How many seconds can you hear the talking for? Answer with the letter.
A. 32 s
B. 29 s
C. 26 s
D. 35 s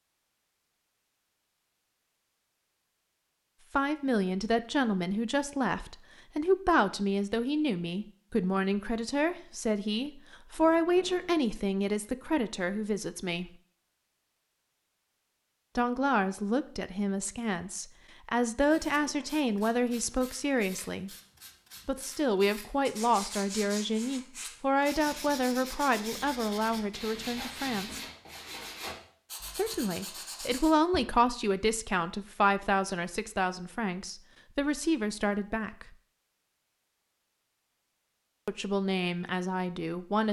B.